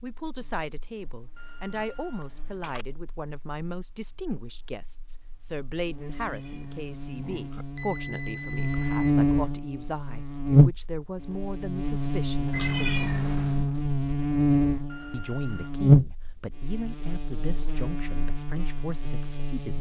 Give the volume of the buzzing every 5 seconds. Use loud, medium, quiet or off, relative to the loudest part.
quiet, medium, loud, loud.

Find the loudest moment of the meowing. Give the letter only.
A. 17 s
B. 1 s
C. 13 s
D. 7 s
C.